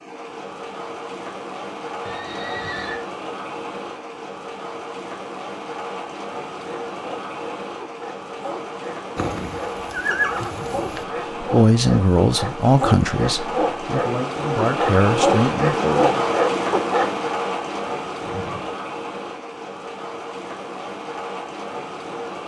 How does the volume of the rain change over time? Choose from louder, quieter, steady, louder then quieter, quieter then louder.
louder then quieter.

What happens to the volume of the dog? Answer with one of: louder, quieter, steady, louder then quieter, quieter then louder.
louder.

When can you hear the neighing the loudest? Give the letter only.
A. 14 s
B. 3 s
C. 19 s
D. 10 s
D.